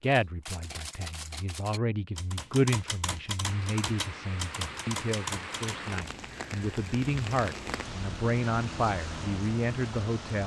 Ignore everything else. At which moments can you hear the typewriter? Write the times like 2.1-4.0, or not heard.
0.0-6.2.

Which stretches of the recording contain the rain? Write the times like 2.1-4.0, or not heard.
3.4-10.4.